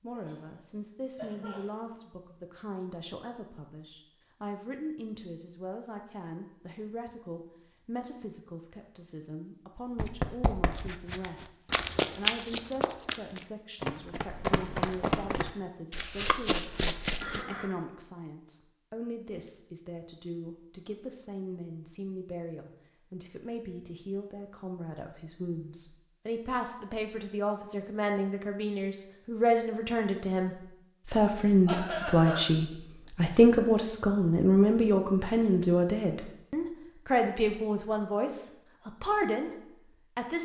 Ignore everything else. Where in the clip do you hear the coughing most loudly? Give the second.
32 s.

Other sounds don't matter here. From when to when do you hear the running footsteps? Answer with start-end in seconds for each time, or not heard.
9.9-17.4.